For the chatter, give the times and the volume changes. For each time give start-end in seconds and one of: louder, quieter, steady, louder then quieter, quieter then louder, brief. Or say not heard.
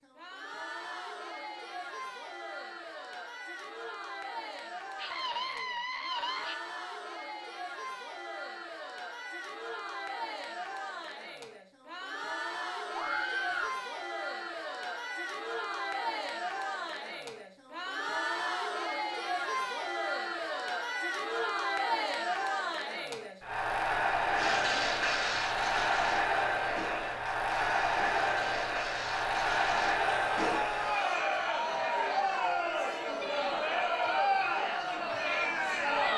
0.0-36.1 louder.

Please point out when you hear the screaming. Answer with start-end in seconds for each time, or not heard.
5.0-6.5, 12.9-13.8, 30.1-31.1.